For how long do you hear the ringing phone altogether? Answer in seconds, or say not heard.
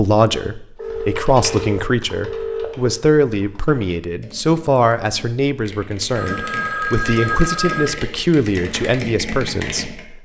4 s.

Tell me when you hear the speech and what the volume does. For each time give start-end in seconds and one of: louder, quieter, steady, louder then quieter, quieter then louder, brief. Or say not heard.
0.0-10.2 steady.